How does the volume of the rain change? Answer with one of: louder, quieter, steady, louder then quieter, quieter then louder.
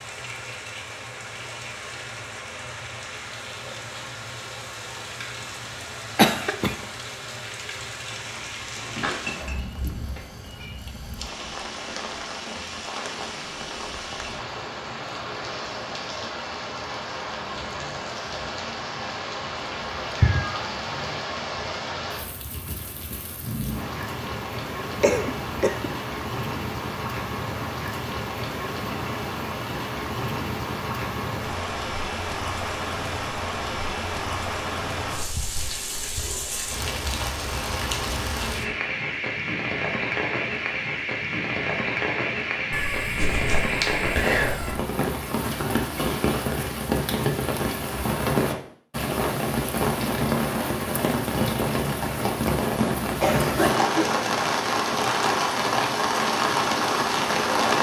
louder.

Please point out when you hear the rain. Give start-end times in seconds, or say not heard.
0.0-57.7.